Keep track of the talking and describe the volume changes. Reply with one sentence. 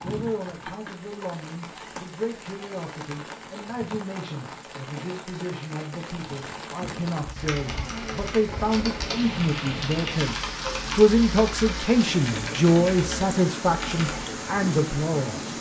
The loudness of the talking goes up.